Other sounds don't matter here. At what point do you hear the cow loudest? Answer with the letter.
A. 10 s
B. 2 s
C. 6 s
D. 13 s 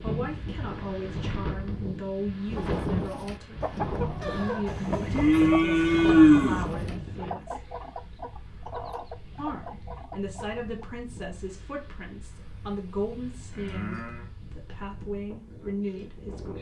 C.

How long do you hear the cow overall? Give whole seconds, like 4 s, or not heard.
4 s.